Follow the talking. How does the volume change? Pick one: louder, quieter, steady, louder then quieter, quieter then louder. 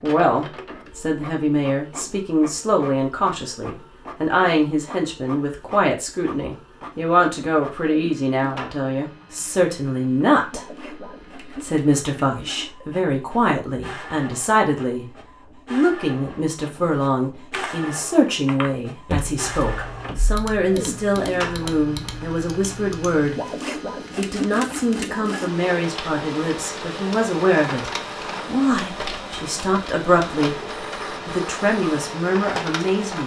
steady.